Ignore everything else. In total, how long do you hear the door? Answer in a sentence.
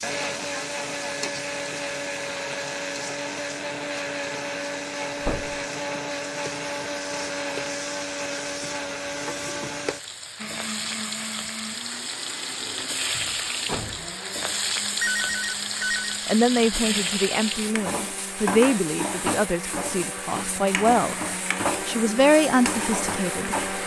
The door can be heard for 2 seconds in total.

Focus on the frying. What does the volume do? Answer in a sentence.
The volume of the frying goes up.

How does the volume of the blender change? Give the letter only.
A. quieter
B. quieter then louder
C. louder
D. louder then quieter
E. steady
B.